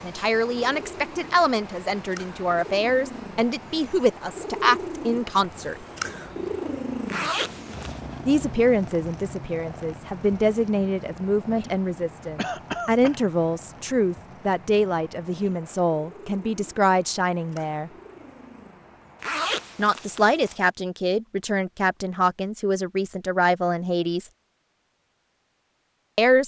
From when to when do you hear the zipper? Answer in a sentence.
You can hear the zipper from 7.1 to 8.0 s and from 19.2 to 20.7 s.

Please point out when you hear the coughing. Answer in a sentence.
You can hear the coughing from 12.3 to 13.2 s.